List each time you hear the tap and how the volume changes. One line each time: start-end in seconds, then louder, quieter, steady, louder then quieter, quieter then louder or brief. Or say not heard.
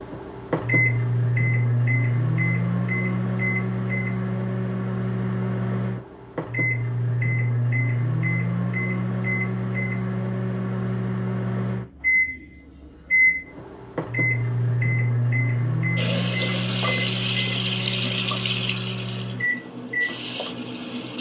15.9-21.1 quieter then louder.